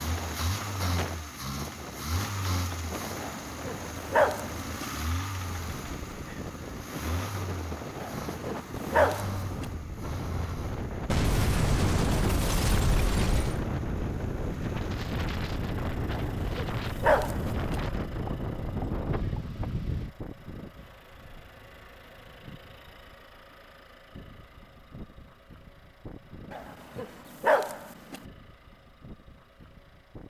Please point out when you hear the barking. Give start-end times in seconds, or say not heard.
3.2-4.8, 8.0-9.7, 16.1-17.8, 26.5-28.2.